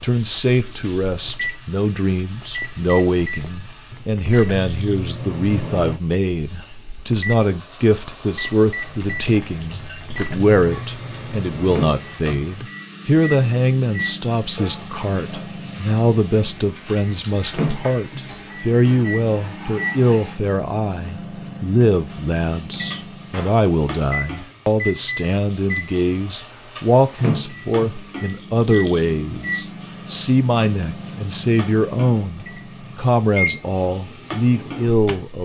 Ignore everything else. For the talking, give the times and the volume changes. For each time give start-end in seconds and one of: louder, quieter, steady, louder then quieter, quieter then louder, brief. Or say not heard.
0.0-35.4 steady.